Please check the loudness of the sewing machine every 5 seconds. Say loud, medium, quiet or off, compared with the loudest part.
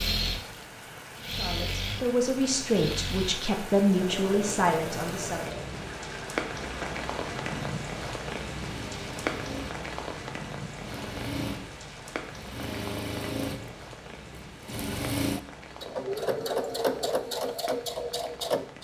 medium, medium, medium, loud.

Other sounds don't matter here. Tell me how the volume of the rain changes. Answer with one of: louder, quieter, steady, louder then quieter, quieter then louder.
louder then quieter.